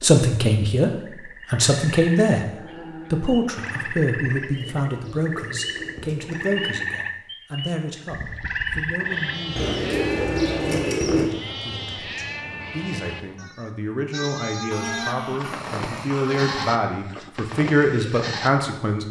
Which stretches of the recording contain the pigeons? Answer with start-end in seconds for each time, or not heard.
4.2-6.9, 9.6-11.3.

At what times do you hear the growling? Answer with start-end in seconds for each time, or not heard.
2.5-4.1, 9.9-10.7, 14.7-16.6.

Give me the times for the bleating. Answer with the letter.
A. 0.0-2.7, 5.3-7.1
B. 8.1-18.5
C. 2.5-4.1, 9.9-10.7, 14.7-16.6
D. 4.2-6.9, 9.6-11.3
B.